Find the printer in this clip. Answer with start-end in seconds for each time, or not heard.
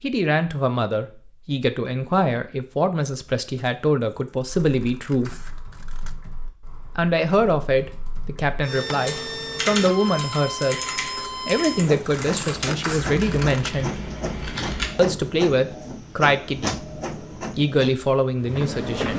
8.6-19.1.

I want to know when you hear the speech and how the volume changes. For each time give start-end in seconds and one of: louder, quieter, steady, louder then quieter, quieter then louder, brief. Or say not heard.
0.0-5.3 steady
7.0-14.0 steady
14.9-16.8 brief
17.6-19.1 brief.